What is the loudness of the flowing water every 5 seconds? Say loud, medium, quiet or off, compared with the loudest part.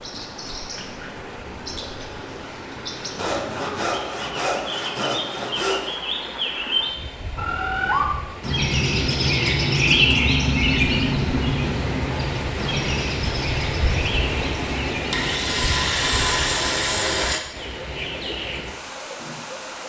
medium, medium, loud, loud.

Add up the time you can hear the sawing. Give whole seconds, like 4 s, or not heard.
5 s.